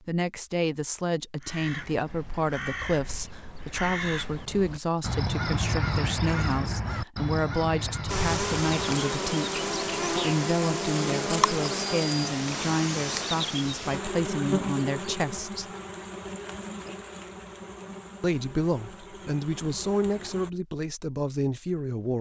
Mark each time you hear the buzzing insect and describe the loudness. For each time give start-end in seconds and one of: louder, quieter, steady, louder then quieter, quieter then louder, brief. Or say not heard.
8.1-20.5 quieter.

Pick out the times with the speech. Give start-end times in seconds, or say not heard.
0.1-15.7, 18.2-22.1.